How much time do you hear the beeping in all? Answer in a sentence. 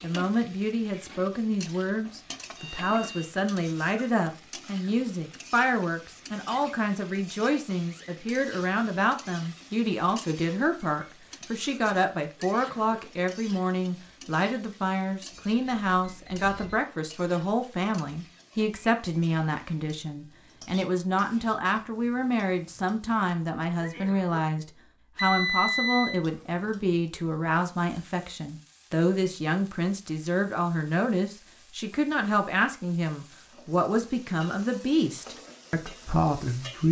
The beeping can be heard for 3 seconds in total.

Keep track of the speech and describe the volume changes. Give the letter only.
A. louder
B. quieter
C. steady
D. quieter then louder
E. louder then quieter
C.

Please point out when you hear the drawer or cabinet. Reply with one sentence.
The drawer or cabinet can't be heard in this clip.